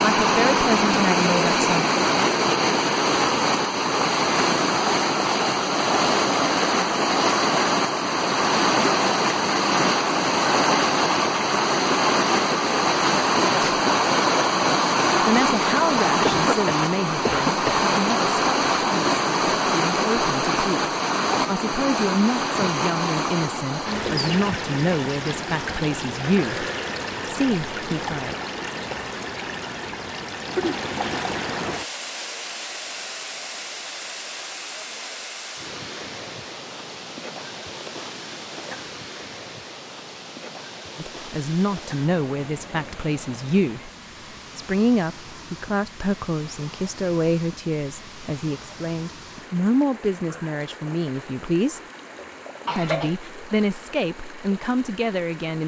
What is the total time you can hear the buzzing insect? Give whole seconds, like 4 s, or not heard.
not heard.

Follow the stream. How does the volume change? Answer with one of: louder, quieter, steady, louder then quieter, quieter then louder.
quieter.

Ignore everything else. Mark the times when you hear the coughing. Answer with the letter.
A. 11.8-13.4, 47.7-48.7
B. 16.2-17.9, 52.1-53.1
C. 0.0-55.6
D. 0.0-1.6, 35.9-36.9
B.